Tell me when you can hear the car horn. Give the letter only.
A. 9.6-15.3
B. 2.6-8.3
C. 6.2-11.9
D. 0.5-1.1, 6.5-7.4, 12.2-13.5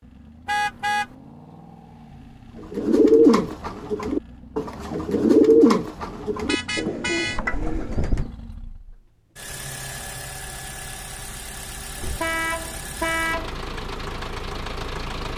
D.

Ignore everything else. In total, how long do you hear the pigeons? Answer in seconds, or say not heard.
6 s.